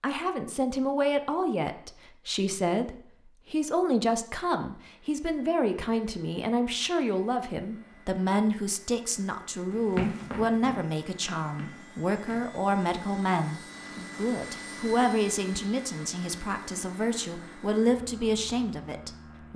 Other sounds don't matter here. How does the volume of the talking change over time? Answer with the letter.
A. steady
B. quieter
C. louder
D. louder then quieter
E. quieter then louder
A.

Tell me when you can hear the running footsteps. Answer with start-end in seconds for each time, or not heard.
9.7-12.6.